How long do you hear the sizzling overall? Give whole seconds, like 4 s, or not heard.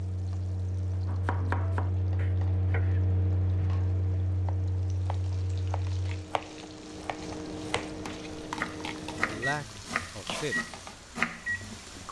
12 s.